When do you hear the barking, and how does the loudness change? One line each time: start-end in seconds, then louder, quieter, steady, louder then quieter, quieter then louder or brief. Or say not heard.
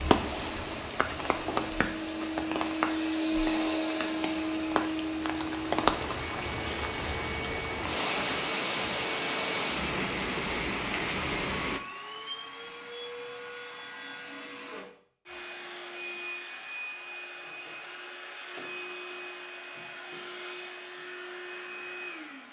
not heard.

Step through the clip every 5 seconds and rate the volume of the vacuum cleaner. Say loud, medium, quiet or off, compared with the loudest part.
loud, medium, medium, medium, medium.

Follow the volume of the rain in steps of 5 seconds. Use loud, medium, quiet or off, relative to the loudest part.
loud, loud, loud, off, off.